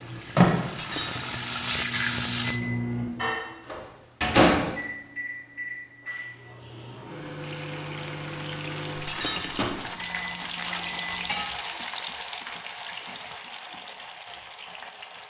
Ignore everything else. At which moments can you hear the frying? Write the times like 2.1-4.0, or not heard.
0.0-2.6, 7.3-15.2.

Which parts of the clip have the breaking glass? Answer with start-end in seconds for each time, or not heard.
0.8-1.4, 9.1-9.7.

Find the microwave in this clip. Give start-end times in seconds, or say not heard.
0.0-11.4.